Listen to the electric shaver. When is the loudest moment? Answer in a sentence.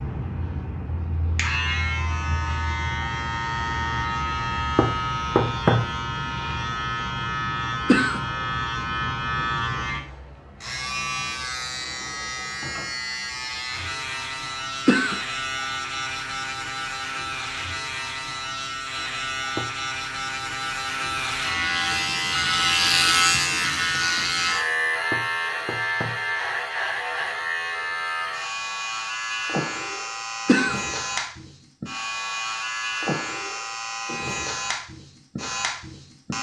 The loudest moment of the electric shaver is at 23 seconds.